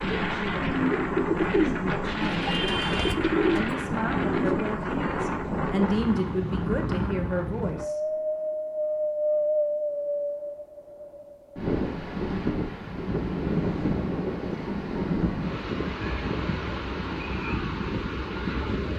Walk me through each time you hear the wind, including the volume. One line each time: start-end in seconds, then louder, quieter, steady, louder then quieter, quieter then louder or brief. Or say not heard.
0.0-18.9 steady.